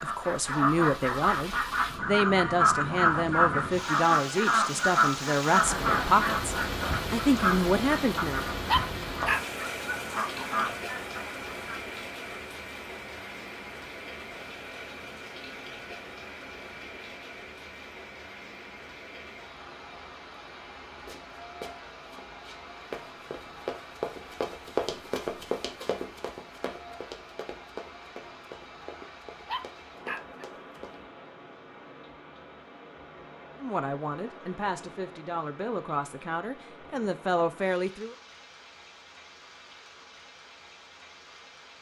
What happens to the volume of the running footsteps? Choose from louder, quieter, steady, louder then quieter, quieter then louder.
louder then quieter.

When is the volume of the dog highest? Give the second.
9 s.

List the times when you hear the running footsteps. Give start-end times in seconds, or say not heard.
21.1-31.0.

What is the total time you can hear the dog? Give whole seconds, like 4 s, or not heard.
2 s.